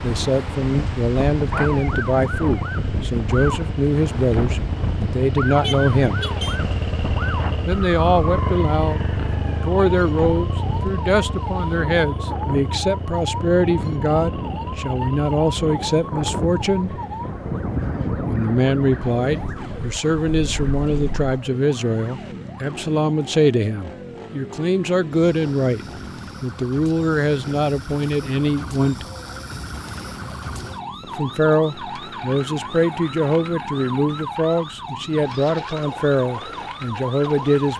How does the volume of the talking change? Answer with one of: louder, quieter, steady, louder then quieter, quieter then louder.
steady.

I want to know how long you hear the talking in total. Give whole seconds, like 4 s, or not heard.
33 s.